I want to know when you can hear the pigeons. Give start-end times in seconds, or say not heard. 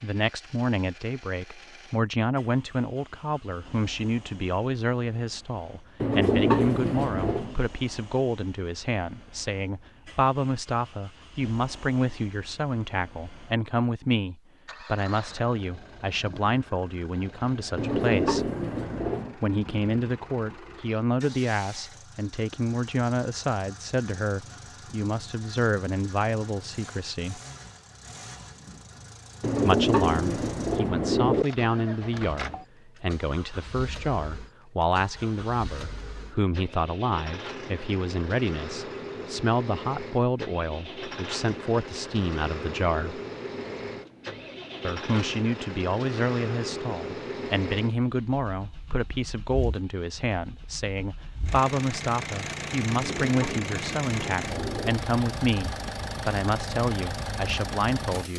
6.0-7.5, 17.8-19.4, 29.4-31.4, 52.9-54.9.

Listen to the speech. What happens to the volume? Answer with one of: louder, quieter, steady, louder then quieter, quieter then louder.
steady.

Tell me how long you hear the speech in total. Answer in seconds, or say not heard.
54 s.